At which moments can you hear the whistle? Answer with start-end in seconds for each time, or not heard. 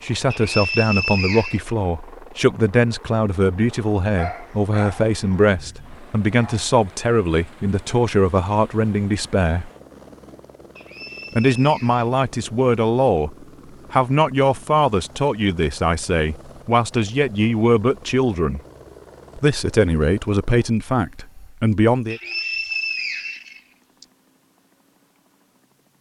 0.3-1.6, 10.8-12.2, 22.1-24.1.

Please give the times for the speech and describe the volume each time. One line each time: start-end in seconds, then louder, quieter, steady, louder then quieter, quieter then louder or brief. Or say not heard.
0.0-9.7 steady
11.3-18.6 steady
19.4-22.2 brief.